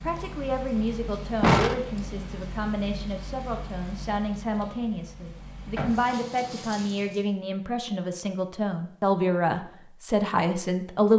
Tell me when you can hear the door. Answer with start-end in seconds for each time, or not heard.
1.4-2.2, 5.8-6.5.